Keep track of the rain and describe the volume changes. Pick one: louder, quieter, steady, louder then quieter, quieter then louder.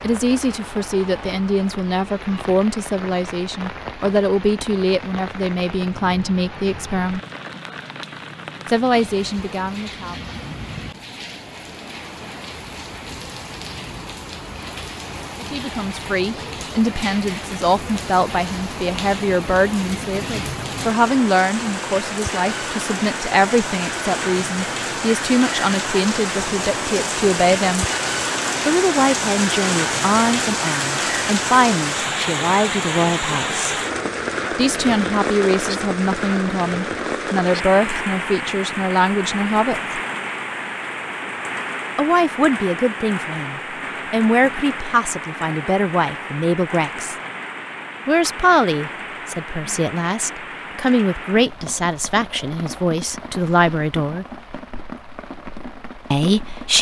louder then quieter.